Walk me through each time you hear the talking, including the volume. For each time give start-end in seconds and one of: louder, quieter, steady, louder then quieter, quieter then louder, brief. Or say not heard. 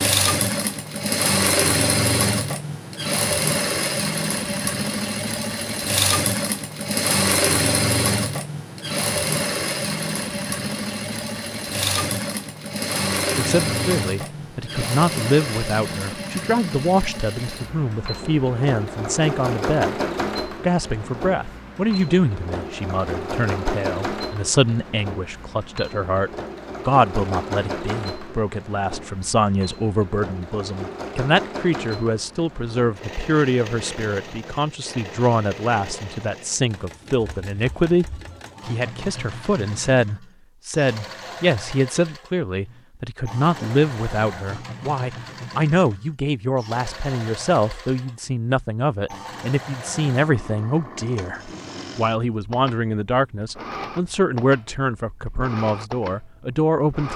13.3-57.1 steady.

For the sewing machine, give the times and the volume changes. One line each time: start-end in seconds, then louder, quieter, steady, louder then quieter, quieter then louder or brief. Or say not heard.
0.0-57.1 quieter.